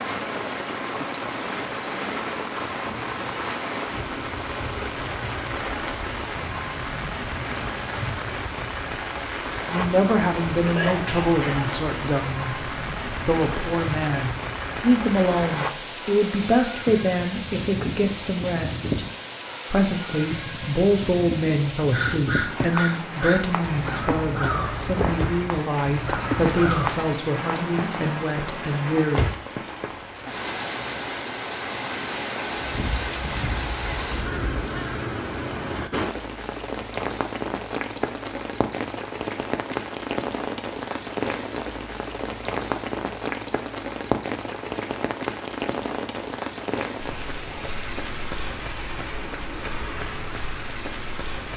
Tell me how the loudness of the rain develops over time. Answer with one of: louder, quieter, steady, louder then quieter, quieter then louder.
steady.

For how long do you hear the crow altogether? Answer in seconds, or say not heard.
8 s.